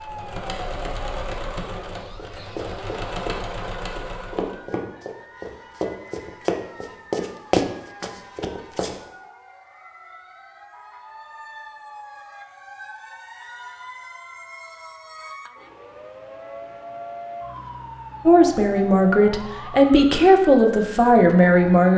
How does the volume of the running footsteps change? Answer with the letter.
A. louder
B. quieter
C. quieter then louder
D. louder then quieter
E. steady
A.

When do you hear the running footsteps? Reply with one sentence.
The running footsteps can be heard from 2.1 to 9.0 s.